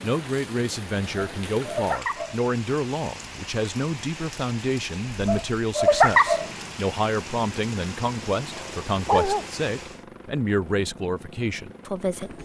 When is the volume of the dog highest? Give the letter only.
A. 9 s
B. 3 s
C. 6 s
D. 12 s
C.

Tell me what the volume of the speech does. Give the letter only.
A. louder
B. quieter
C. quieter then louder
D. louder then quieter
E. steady
E.